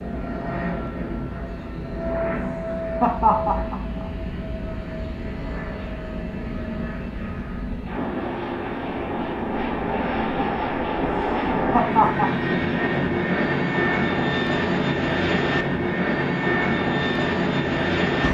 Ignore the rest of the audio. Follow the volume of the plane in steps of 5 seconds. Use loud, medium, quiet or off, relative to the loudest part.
medium, medium, loud, loud.